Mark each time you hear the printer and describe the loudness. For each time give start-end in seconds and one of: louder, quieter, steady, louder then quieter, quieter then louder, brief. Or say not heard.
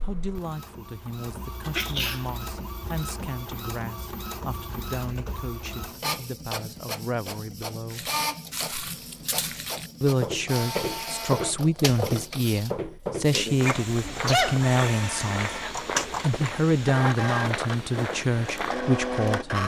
0.0-19.6 louder.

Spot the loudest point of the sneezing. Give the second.
14 s.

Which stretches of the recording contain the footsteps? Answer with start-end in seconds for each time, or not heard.
7.9-18.8.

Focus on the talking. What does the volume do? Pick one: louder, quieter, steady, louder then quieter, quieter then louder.
louder.